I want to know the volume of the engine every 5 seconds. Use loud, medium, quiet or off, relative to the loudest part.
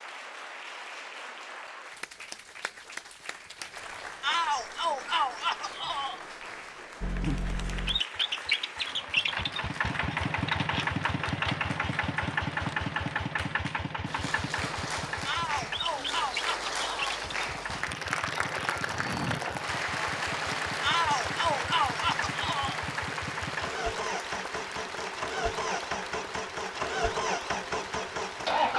off, loud, loud, medium, medium, loud.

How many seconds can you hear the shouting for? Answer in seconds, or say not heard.
6 s.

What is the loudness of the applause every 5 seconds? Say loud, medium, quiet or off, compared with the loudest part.
medium, medium, medium, loud, loud, medium.